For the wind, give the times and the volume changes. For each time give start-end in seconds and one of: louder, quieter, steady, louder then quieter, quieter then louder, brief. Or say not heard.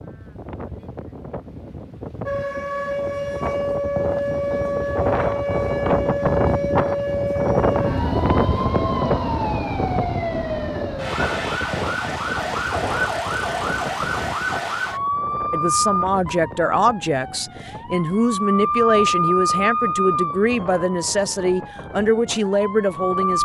0.0-23.3 louder then quieter.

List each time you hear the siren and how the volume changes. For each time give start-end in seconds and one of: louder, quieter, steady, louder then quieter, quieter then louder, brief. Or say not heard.
2.2-23.3 steady.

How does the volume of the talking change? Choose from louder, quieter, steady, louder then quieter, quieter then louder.
steady.